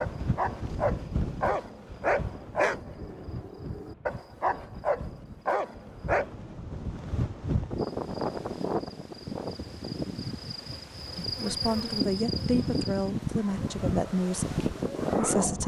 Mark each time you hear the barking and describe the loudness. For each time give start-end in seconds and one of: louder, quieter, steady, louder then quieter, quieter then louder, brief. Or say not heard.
0.0-6.3 steady
13.2-15.6 brief.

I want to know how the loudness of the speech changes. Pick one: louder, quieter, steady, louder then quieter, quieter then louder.
quieter.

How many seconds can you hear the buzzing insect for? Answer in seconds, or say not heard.
5 s.